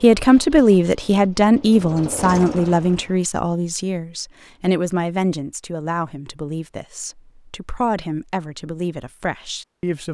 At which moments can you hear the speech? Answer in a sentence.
The speech can be heard from 0.0 to 10.0 s.